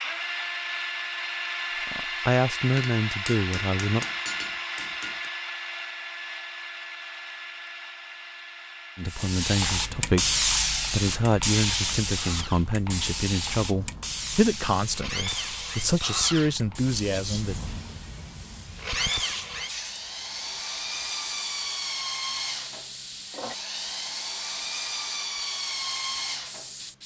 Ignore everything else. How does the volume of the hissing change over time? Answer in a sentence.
The volume of the hissing goes down.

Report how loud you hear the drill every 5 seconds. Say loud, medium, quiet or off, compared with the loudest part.
loud, medium, quiet, loud, loud, loud.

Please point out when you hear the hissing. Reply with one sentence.
The hissing can be heard from 9.1 to 27.0 s.